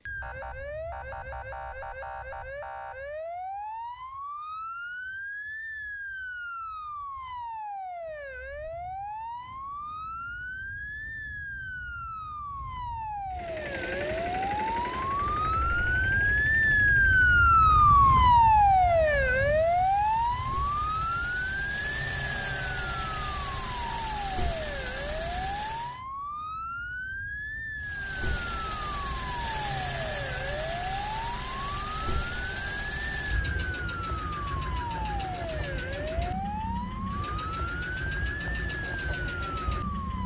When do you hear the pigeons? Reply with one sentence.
You can't hear the pigeons here.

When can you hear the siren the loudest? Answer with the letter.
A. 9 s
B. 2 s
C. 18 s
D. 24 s
C.